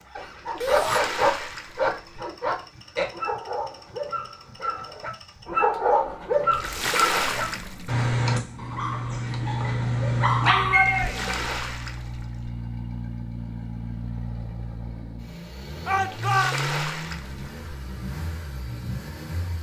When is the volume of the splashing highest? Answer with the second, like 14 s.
7 s.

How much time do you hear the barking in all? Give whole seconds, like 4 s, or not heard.
11 s.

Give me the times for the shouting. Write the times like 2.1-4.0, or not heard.
0.6-1.0, 10.4-11.4, 15.8-16.6.